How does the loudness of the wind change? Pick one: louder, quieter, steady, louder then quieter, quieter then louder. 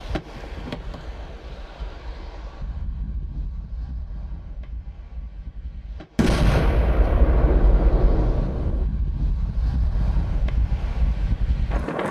quieter then louder.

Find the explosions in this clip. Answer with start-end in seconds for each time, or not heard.
6.2-8.8.